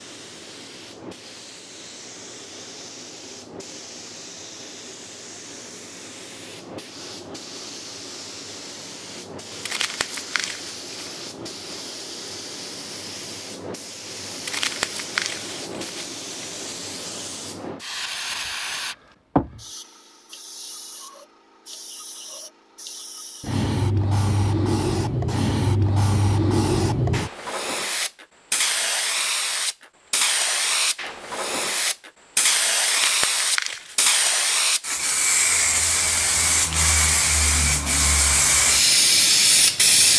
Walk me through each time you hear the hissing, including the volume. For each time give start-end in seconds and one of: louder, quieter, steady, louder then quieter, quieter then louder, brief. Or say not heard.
0.0-40.1 louder.